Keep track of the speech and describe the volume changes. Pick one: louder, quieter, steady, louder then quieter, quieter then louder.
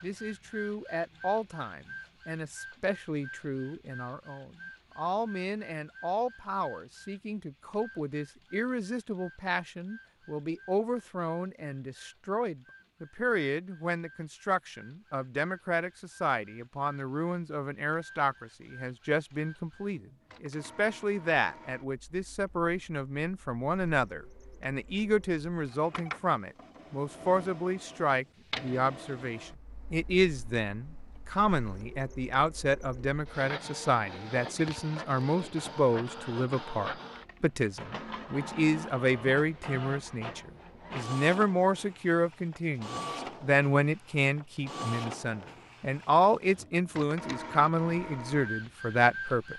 louder.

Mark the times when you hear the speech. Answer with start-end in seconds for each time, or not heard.
0.0-49.5.